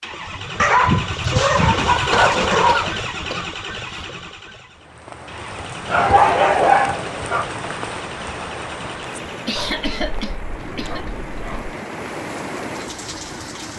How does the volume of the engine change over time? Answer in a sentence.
The loudness of the engine goes down.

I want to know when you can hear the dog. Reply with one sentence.
You can hear the dog from 0.6 to 3.0 s, from 5.9 to 7.5 s and from 9.6 to 11.8 s.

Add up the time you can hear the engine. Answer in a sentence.
You can hear the engine for 14 seconds altogether.